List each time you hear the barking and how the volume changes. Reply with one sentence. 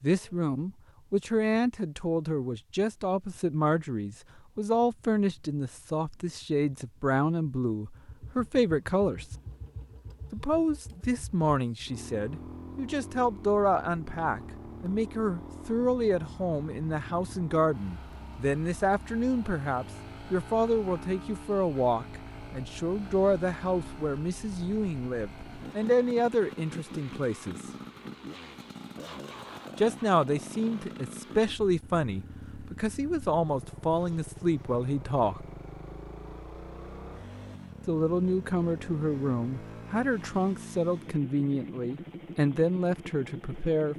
The barking can't be heard in this clip.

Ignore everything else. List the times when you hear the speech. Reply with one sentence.
The speech can be heard from 0.0 to 9.2 s, from 10.3 to 27.6 s, from 29.8 to 35.5 s and from 37.9 to 43.9 s.